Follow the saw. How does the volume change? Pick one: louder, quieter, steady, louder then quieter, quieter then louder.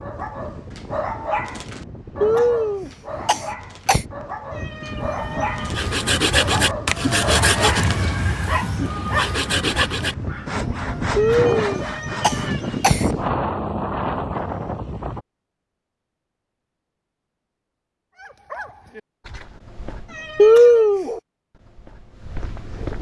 quieter.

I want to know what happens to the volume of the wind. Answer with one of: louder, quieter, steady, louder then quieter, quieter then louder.
louder.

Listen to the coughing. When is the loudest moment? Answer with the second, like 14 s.
21 s.